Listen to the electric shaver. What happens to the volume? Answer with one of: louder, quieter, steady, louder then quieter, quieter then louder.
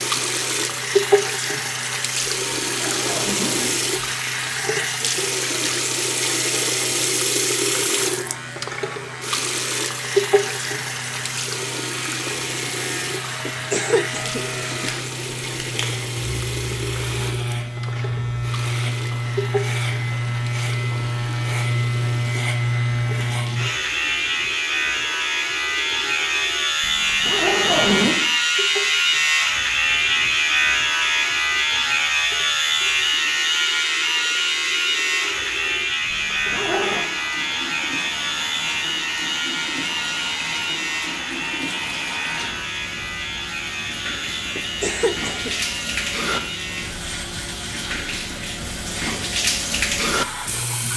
louder then quieter.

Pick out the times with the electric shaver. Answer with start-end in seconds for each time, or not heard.
0.0-50.9.